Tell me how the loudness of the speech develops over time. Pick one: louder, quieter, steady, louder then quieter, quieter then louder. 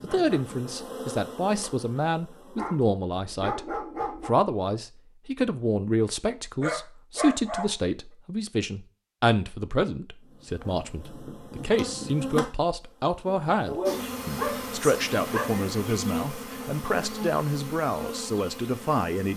steady.